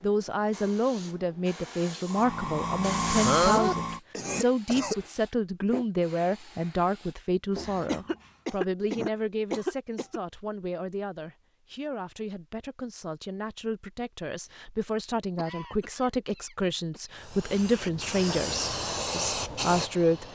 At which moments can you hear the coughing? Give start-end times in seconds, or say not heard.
3.2-5.0, 7.8-10.2, 15.2-17.0.